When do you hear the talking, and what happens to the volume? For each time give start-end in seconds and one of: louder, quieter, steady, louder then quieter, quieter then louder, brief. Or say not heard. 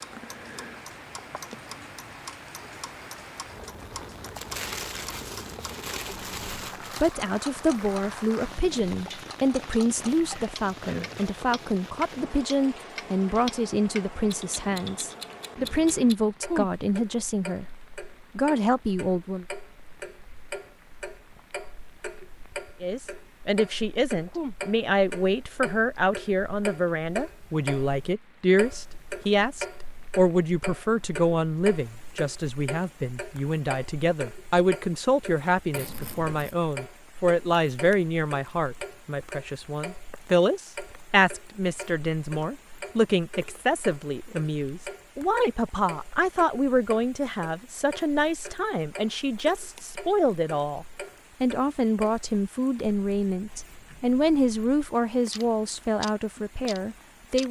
7.0-19.4 steady
22.8-57.4 steady.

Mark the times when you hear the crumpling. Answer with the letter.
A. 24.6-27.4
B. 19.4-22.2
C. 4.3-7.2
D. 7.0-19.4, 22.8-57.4
C.